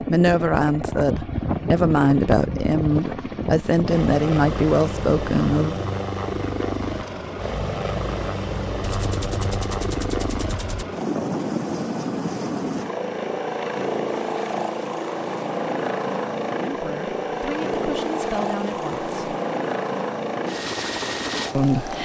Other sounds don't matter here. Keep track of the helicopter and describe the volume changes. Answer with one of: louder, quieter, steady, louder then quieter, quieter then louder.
steady.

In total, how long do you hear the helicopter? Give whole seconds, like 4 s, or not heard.
22 s.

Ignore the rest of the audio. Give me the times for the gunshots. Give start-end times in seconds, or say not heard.
8.8-10.8.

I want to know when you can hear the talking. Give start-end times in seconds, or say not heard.
0.0-5.8, 16.6-19.4, 21.5-22.0.